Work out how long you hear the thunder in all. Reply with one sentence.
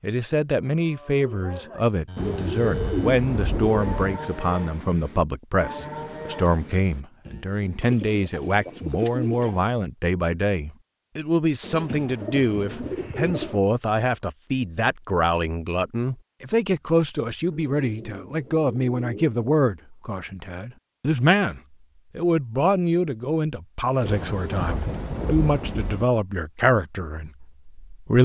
You can hear the thunder for 4 seconds altogether.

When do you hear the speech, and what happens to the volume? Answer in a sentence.
The speech can be heard from 0.0 to 28.2 s, at a steady volume.